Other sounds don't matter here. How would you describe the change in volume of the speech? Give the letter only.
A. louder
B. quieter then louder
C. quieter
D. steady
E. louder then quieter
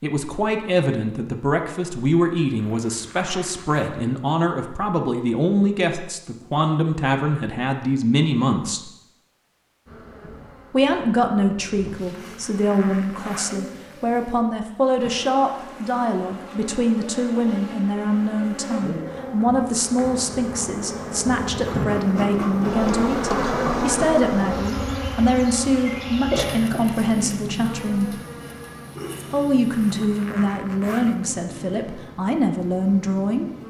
D.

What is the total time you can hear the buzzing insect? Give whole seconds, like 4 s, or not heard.
24 s.